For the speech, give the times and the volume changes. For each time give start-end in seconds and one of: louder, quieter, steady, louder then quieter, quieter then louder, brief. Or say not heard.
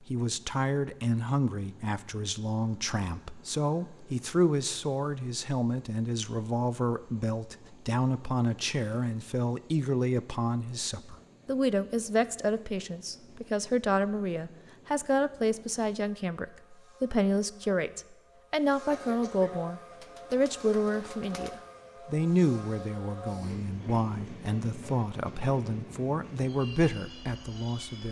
0.0-28.0 steady.